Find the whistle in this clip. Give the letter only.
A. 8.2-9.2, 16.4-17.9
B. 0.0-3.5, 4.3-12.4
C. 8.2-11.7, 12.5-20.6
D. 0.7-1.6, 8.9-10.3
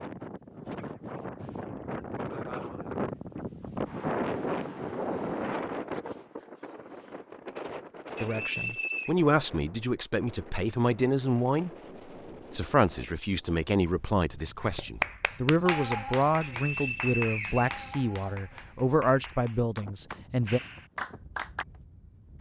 A.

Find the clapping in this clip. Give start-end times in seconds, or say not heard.
14.6-21.6.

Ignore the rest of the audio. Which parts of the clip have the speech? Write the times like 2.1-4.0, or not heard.
8.2-11.7, 12.5-20.6.